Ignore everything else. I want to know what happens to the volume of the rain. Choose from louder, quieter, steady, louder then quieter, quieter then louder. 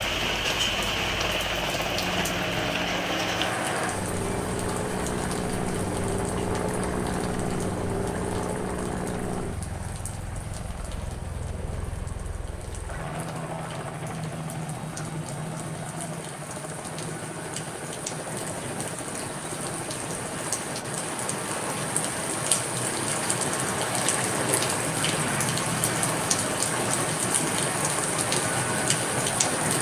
quieter then louder.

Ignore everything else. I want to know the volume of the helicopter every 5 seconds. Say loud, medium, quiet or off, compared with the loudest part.
loud, loud, medium, medium, medium, medium.